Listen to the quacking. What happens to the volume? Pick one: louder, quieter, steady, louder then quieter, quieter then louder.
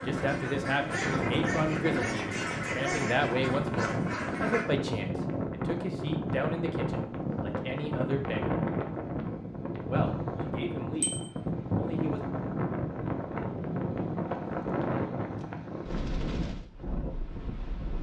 steady.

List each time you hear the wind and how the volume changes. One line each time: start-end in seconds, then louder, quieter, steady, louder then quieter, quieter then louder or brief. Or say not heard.
0.0-17.9 steady.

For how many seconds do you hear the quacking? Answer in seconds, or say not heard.
5 s.